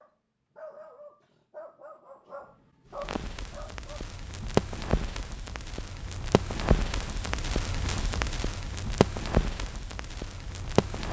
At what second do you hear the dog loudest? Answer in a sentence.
The volume of the dog peaks at 3 seconds.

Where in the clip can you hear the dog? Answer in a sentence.
The dog can be heard from 0.0 to 4.0 s.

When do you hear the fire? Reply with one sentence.
The fire can be heard from 3.0 to 11.0 s.